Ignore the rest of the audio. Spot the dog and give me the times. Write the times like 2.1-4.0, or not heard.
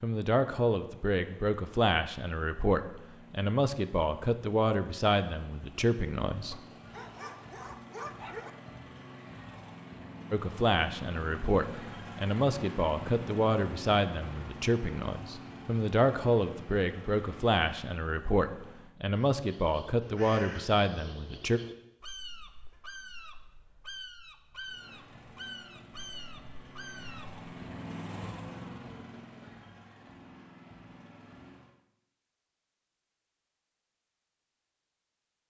6.5-8.5.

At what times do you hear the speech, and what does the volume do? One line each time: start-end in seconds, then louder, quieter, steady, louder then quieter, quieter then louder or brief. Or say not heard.
0.0-6.6 steady
10.3-21.6 steady.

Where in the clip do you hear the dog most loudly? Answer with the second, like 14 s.
8 s.